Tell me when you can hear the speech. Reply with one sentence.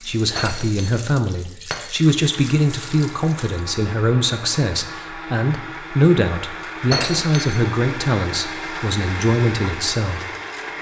You can hear the speech from 0.0 to 10.2 s.